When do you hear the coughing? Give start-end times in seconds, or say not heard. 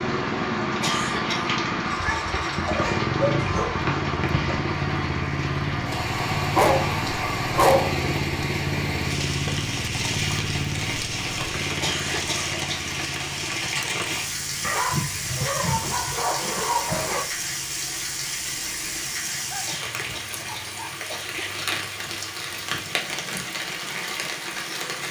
0.8-1.5, 11.8-12.8, 19.6-21.6.